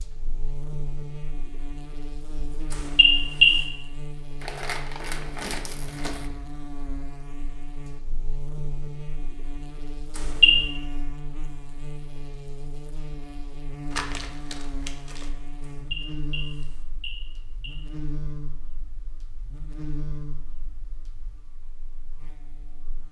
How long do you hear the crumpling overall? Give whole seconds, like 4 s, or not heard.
3 s.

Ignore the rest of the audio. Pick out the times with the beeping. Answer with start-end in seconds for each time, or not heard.
2.7-3.6, 10.2-10.7, 15.6-17.8.